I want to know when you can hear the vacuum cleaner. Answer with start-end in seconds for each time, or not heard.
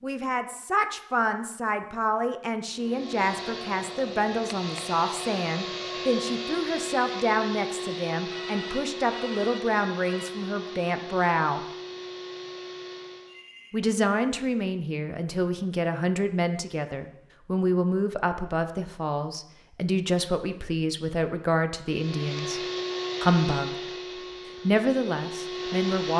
2.8-13.4, 21.9-26.1.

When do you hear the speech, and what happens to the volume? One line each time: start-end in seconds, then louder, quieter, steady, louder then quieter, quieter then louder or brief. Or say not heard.
0.0-11.7 steady
13.7-22.6 steady
23.2-23.9 brief
24.6-26.1 brief.